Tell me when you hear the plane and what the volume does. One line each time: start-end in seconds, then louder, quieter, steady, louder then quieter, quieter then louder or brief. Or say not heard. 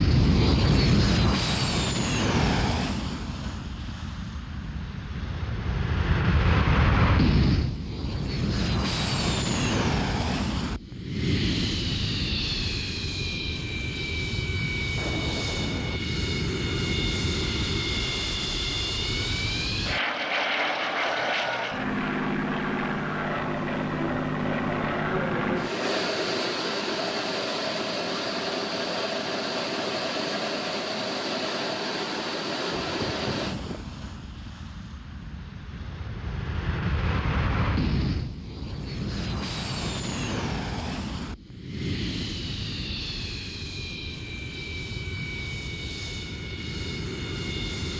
0.0-47.9 quieter.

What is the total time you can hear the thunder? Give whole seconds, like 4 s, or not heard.
2 s.